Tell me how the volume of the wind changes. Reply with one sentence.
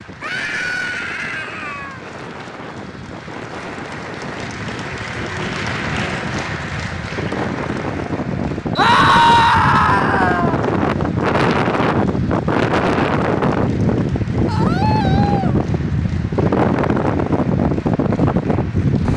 The loudness of the wind goes up.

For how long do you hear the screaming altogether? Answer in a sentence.
The screaming can be heard for 5 seconds in total.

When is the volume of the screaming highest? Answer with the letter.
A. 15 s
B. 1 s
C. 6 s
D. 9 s
D.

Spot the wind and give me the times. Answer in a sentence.
The wind can be heard from 0.0 to 19.1 s.